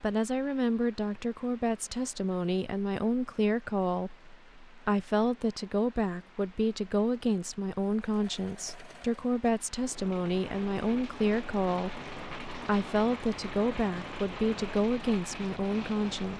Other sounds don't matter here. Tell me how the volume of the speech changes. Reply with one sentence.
The volume of the speech stays about the same.